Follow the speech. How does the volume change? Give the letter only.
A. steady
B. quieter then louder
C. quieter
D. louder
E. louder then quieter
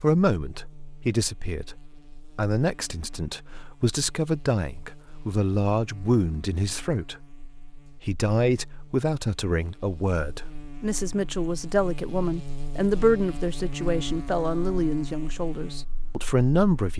A.